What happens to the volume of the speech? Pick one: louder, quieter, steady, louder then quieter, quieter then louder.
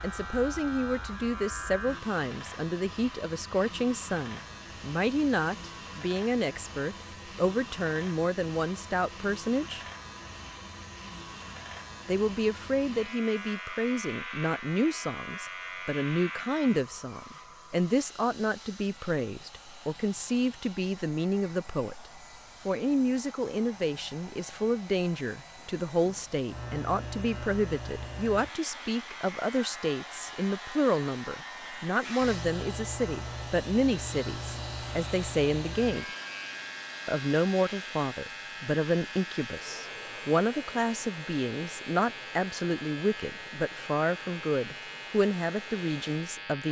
steady.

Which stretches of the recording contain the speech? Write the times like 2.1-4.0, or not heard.
0.0-9.8, 12.1-21.9, 22.6-36.0, 37.0-46.6.